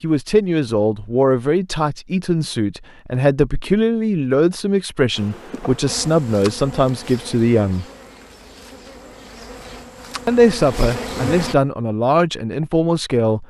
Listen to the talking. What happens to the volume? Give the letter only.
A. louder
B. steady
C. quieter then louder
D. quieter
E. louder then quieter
B.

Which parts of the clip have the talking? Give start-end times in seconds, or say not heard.
0.0-7.8, 10.2-13.4.